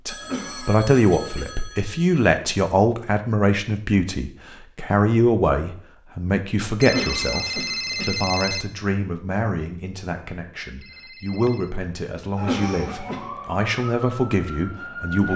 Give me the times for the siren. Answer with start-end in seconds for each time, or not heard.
12.3-15.3.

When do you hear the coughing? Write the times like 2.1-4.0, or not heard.
0.2-1.5, 6.8-8.2, 12.3-13.2.